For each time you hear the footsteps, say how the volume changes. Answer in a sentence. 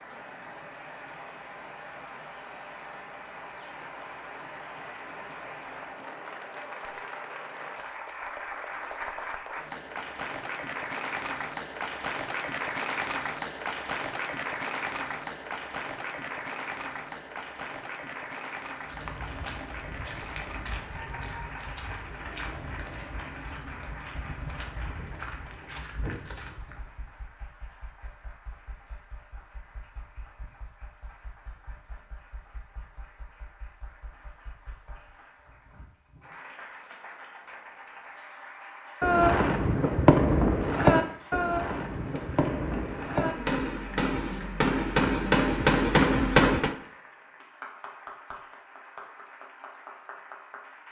The footsteps can be heard from 18.9 to 26.9 s, at a steady volume.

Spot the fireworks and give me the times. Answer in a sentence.
You can hear the fireworks from 39.0 to 46.8 s.